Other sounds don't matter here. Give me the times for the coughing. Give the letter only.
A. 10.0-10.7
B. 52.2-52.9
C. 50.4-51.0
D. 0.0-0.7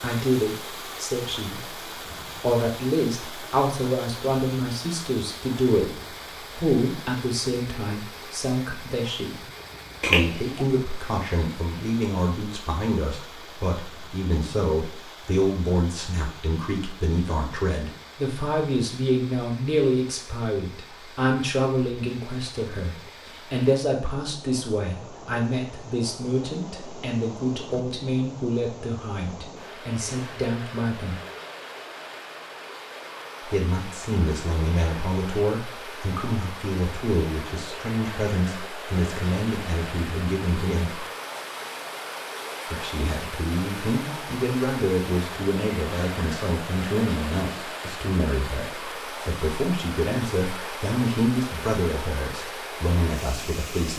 A.